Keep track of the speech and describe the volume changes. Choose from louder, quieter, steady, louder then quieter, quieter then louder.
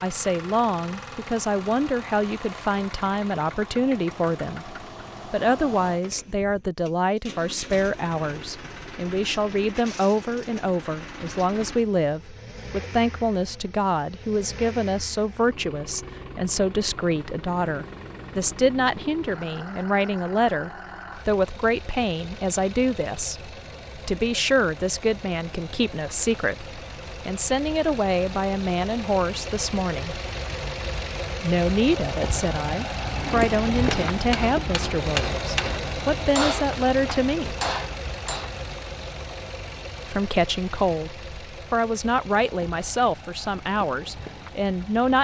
steady.